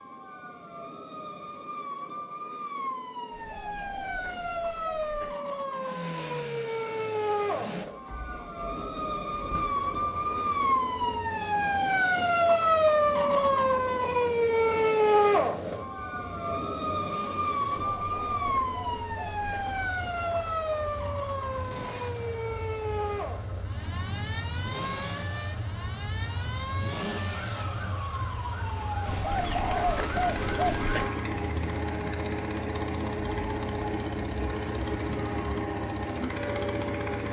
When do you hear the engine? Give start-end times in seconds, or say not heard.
5.7-37.2.